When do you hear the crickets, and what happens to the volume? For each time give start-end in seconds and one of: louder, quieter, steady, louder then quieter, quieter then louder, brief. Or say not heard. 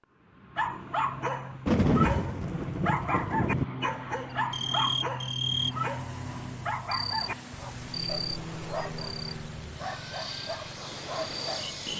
4.3-11.9 quieter.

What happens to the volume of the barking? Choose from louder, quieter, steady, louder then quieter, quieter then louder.
quieter.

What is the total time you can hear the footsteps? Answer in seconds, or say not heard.
not heard.